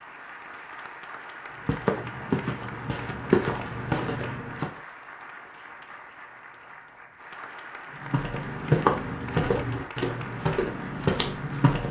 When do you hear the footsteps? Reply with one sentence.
The footsteps can be heard from 1.6 to 4.8 s and from 8.0 to 11.8 s.